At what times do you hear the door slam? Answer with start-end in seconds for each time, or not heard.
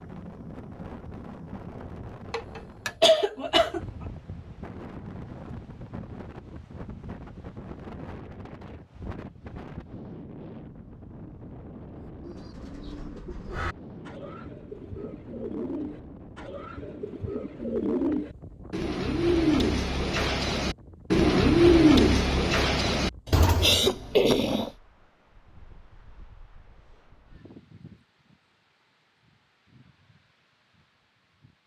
not heard.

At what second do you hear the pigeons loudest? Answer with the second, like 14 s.
22 s.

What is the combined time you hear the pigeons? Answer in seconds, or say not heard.
12 s.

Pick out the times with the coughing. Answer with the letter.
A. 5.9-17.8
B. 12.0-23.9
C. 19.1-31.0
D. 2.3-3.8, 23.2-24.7
D.